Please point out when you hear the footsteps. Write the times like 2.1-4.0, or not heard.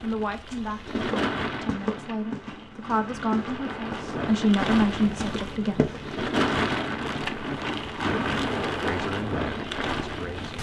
0.5-6.7.